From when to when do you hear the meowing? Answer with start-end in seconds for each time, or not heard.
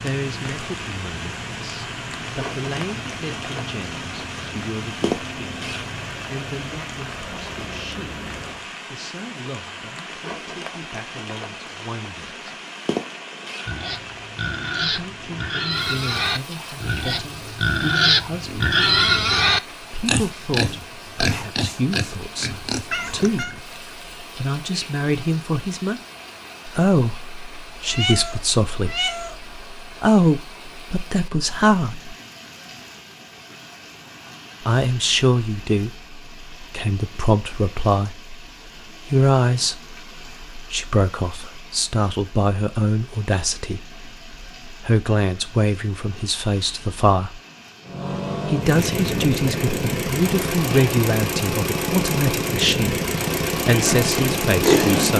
22.9-23.6, 27.9-29.4.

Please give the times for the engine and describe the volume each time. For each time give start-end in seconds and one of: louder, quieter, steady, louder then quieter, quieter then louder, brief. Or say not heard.
0.0-8.7 steady
47.9-55.1 steady.